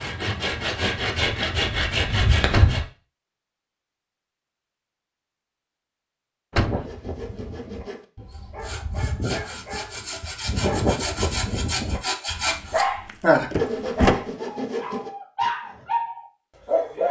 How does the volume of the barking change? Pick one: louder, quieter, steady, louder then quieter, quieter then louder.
louder.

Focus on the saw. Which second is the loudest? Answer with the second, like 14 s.
13 s.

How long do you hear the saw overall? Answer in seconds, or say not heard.
11 s.